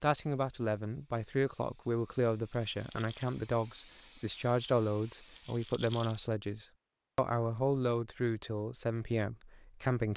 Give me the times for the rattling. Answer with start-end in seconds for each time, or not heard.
2.5-3.4, 5.2-6.2.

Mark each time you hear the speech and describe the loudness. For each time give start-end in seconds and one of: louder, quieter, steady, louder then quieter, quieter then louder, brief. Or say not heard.
0.0-10.1 steady.